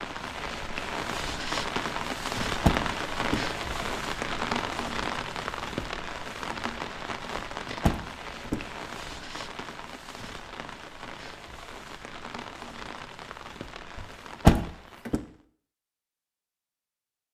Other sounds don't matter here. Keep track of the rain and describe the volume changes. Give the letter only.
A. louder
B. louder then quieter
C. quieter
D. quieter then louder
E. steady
C.